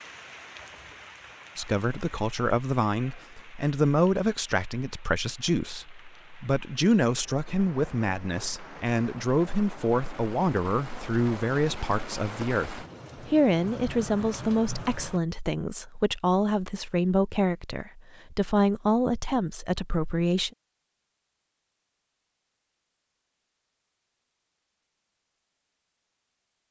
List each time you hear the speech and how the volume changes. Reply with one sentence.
The speech can be heard from 1.6 to 20.5 s, at a steady volume.